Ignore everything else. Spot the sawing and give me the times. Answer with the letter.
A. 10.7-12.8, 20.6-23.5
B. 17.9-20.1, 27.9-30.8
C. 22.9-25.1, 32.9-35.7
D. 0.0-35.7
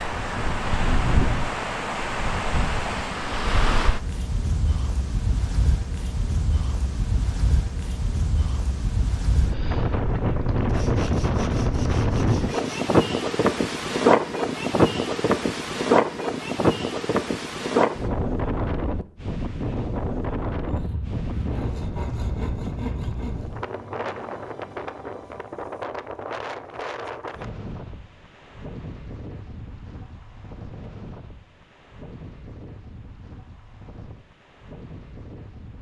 A.